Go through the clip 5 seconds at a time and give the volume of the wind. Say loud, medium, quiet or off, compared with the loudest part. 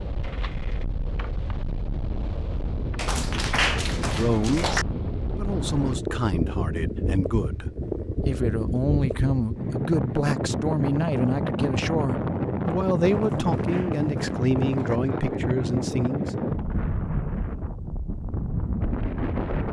medium, loud, loud, loud.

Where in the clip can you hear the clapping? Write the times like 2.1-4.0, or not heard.
3.0-4.8, 13.1-15.0.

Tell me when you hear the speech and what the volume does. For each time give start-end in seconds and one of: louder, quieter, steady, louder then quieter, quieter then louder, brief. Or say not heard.
4.0-16.4 steady.